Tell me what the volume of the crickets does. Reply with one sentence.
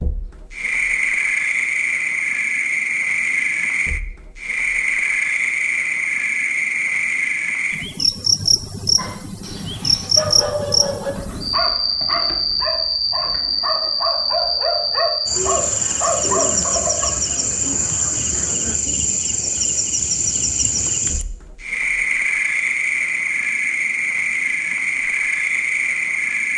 The volume of the crickets stays about the same.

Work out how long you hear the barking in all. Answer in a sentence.
You can hear the barking for 8 seconds altogether.